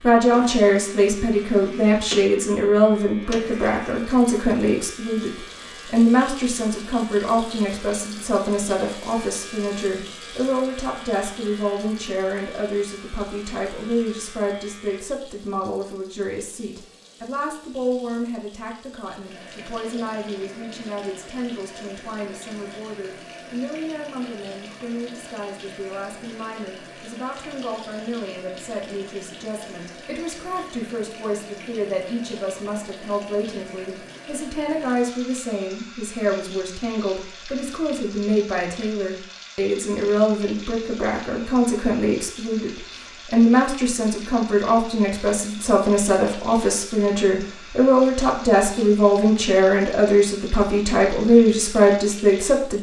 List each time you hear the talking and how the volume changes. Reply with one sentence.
You can hear the talking from 0.0 to 52.7 s, getting quieter then louder.